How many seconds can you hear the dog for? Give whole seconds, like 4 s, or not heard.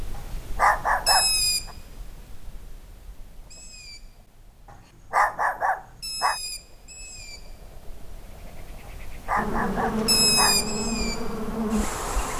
4 s.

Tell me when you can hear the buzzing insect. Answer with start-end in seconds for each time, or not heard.
9.3-12.3.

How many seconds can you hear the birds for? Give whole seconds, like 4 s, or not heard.
12 s.